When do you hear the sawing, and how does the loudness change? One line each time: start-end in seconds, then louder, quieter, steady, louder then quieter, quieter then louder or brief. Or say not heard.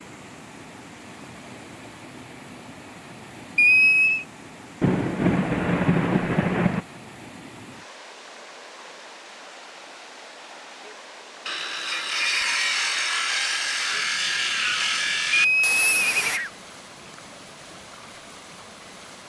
11.4-16.4 steady.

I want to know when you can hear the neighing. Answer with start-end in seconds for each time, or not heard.
3.5-4.2, 15.3-16.5.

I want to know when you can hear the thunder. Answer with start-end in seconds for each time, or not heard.
4.8-6.8.